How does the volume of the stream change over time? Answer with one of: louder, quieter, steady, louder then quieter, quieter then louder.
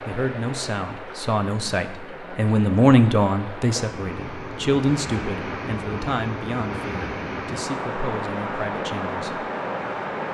louder.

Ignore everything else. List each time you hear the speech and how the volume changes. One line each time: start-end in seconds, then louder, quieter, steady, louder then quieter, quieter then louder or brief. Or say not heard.
0.0-9.5 louder then quieter.